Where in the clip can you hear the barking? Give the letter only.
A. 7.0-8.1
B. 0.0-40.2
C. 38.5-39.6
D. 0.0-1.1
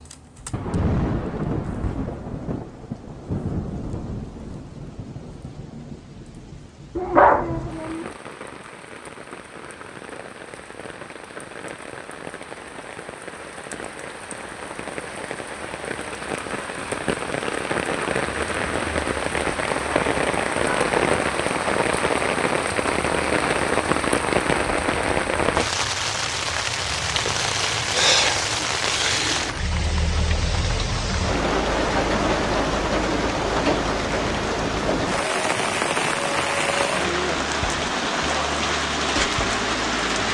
A.